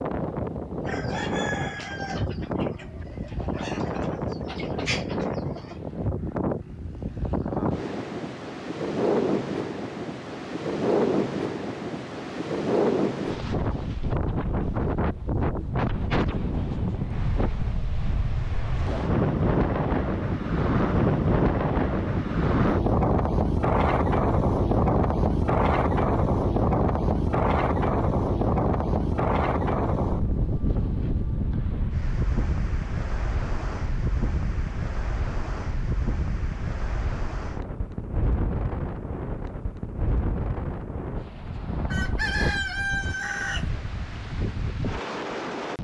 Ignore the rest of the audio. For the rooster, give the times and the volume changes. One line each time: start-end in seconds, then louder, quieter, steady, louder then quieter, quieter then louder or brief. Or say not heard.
0.8-5.8 quieter then louder
41.9-43.7 brief.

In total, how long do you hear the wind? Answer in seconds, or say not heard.
46 s.